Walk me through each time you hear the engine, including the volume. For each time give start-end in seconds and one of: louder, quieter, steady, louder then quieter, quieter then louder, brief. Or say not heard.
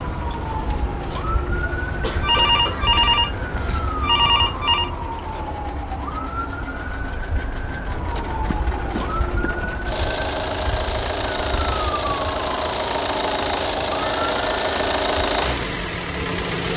0.0-16.7 louder.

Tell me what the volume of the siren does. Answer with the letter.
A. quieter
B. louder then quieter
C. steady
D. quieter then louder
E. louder
C.